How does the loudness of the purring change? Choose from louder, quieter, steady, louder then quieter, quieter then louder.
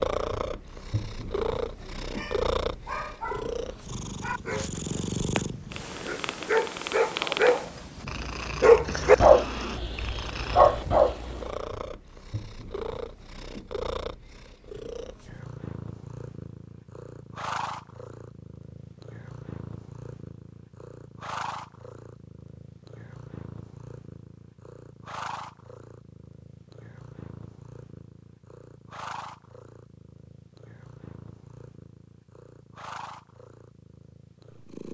quieter.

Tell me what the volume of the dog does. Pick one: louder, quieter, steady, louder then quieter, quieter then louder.
louder.